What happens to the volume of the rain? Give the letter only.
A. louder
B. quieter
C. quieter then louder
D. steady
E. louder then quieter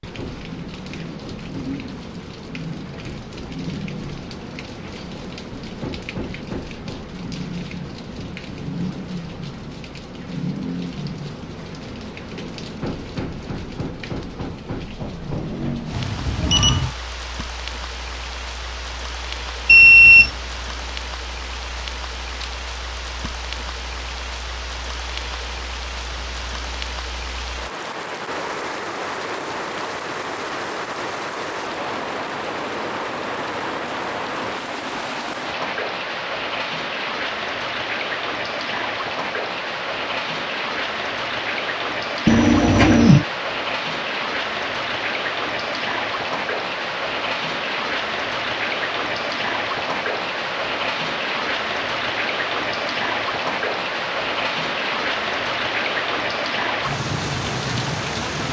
A.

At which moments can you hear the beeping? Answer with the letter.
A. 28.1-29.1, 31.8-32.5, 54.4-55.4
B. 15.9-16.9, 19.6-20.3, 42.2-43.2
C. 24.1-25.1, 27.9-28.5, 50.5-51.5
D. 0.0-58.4
B.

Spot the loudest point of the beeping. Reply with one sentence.
The loudest moment of the beeping is at 20 seconds.